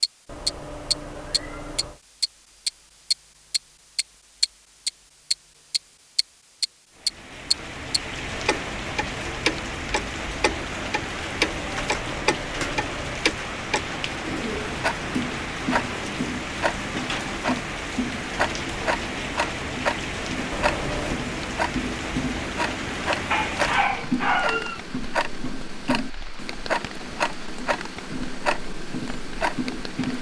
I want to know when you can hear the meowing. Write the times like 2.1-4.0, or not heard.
0.2-2.0, 11.5-13.3, 20.5-21.2.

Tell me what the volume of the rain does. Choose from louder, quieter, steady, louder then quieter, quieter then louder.
quieter.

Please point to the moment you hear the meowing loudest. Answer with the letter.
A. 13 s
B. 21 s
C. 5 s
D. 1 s
B.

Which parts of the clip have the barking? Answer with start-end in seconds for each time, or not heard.
23.3-24.8.